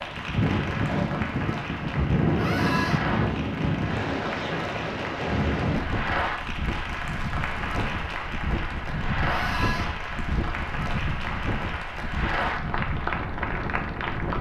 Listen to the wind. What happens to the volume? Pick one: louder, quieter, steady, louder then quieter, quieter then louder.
quieter.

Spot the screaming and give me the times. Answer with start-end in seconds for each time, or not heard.
2.4-3.0, 9.2-9.9.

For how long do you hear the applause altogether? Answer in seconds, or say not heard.
14 s.